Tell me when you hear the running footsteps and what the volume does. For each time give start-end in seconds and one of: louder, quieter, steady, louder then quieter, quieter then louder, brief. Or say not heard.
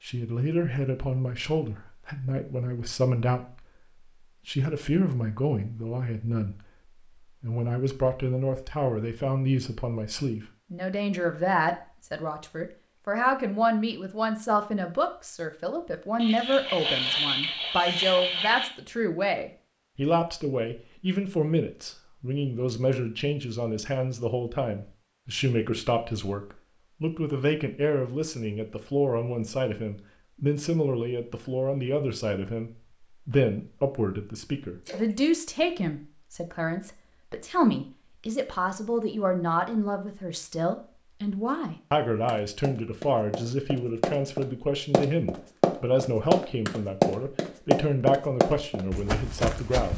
42.2-49.9 louder then quieter.